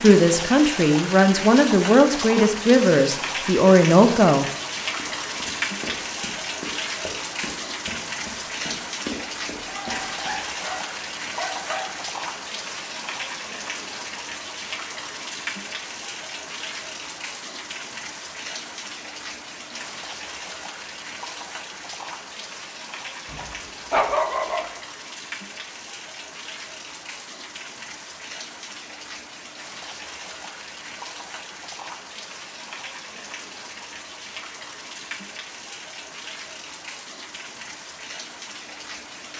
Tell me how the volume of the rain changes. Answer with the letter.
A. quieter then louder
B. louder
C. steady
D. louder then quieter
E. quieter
E.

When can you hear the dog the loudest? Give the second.
24 s.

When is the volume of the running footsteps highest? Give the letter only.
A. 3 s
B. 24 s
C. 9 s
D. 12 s
C.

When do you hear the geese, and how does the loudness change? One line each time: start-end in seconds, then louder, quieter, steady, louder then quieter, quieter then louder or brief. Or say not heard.
not heard.